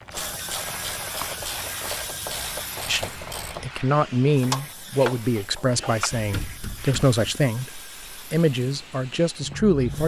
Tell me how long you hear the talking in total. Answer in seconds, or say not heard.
7 s.